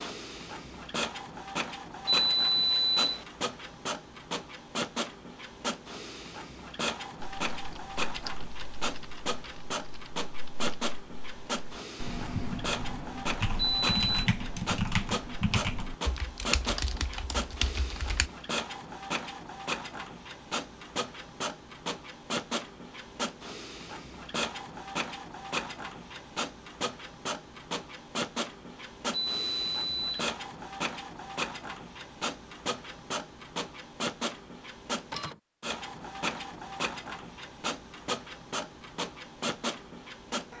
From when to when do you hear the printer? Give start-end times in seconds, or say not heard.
0.0-40.5.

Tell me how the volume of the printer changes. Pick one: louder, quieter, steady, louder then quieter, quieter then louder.
steady.